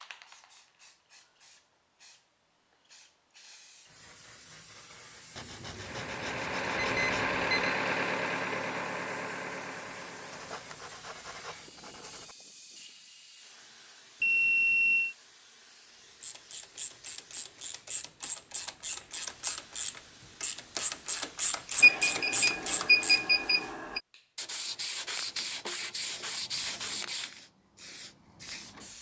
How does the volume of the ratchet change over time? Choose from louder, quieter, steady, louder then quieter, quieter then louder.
louder.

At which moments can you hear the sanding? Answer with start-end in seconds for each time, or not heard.
5.3-7.3, 10.3-12.3, 24.4-27.3.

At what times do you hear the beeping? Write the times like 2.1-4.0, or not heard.
6.8-7.8, 14.2-15.2, 21.8-24.0.